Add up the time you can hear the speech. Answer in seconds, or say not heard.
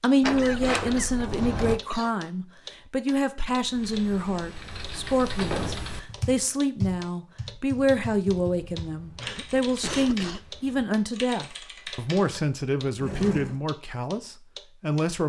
15 s.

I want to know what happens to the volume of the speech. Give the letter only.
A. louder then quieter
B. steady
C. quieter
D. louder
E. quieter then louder
B.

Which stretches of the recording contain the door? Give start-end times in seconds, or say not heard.
0.2-1.8, 5.3-6.2, 12.2-13.6.